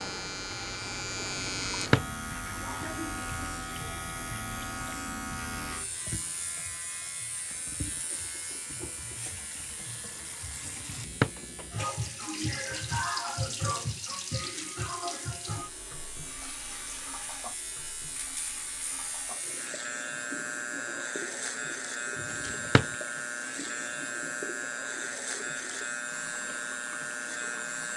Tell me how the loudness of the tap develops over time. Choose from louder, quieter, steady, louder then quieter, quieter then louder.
louder then quieter.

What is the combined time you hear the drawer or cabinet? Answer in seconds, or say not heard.
2 s.